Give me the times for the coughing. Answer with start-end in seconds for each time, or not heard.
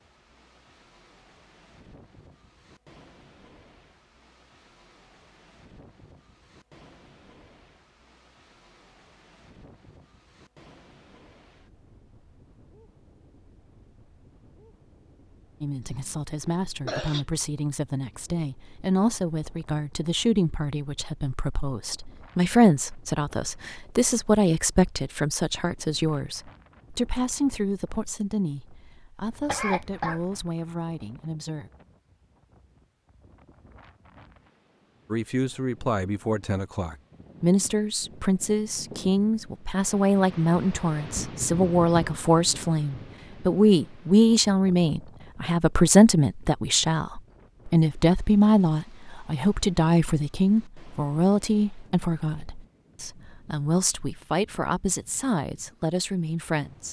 15.8-17.2, 29.2-30.3.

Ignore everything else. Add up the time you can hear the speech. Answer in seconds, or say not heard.
38 s.